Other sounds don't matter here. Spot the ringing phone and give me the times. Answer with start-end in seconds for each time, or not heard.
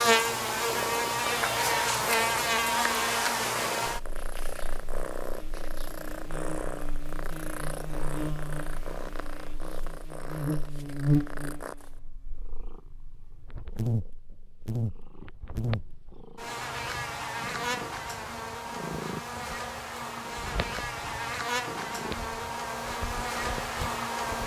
not heard.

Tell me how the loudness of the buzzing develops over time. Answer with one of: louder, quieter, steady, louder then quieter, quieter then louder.
quieter then louder.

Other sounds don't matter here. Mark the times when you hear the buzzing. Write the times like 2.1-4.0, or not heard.
0.0-24.4.